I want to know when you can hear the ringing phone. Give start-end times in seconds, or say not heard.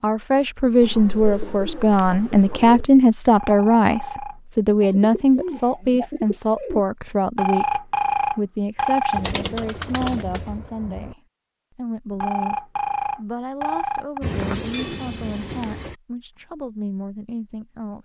3.4-4.4, 7.3-9.2, 12.2-14.2.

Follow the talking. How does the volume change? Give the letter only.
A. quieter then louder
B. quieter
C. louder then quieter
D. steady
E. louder
B.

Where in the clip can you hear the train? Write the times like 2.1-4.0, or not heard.
14.2-15.9.